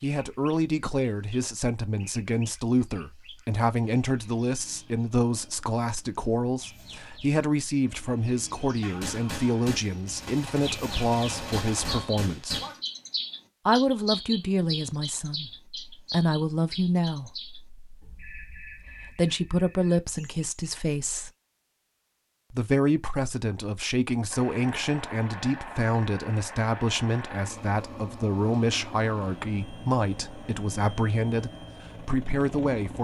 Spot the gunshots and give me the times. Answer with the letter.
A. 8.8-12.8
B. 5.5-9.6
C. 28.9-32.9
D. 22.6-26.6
A.